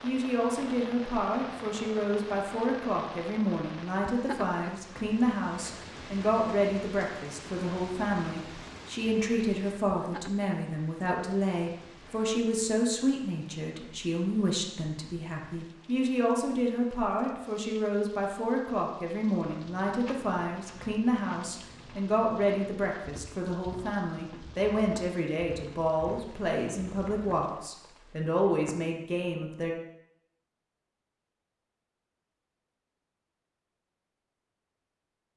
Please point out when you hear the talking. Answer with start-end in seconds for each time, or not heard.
0.0-29.8.